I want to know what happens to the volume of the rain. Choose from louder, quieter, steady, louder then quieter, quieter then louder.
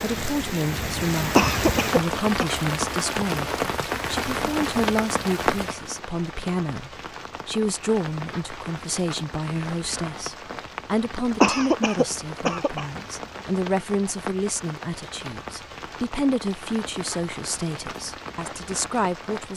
quieter.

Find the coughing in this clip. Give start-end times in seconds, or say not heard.
1.4-2.5, 11.4-12.8.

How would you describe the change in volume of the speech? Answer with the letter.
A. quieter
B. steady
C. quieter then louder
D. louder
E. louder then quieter
B.